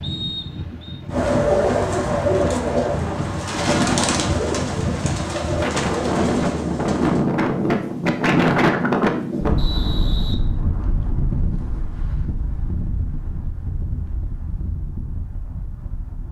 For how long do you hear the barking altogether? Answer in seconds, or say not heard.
not heard.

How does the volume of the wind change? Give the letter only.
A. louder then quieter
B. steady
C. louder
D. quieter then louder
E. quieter
A.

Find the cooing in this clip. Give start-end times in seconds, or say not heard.
1.1-7.2.